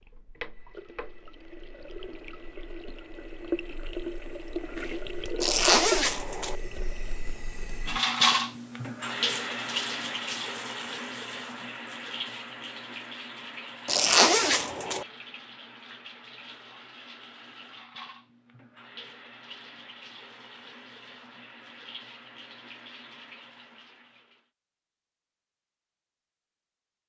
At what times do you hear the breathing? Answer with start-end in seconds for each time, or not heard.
not heard.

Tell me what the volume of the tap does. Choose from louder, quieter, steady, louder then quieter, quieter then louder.
louder then quieter.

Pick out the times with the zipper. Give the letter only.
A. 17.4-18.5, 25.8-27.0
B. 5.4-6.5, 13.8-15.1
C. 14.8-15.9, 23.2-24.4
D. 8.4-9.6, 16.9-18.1
B.